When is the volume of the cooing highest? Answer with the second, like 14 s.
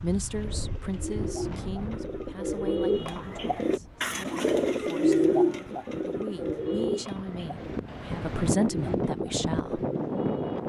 5 s.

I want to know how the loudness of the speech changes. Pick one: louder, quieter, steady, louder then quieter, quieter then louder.
quieter then louder.